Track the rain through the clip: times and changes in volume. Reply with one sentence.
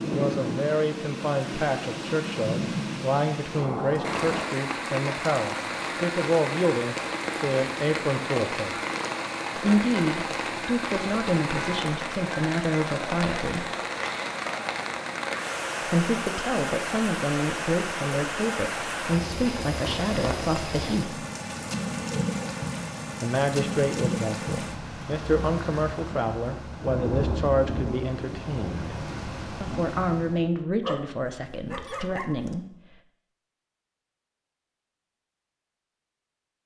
The rain can be heard from 0.0 to 30.5 s, at a steady volume.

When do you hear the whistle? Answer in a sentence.
You can't hear the whistle here.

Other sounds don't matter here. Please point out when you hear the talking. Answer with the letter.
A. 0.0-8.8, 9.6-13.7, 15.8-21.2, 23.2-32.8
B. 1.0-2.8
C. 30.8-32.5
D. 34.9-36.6
A.